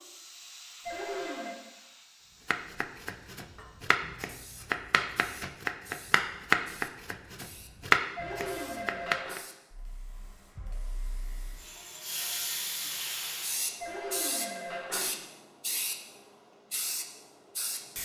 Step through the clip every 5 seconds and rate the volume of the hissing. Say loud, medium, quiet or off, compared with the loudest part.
quiet, quiet, loud, loud.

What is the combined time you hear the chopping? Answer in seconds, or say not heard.
7 s.